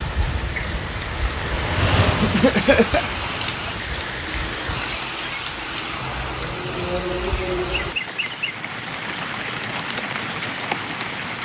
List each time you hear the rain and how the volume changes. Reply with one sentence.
The rain can be heard from 0.0 to 11.4 s, at a steady volume.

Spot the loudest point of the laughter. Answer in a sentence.
The loudest moment of the laughter is at 3 seconds.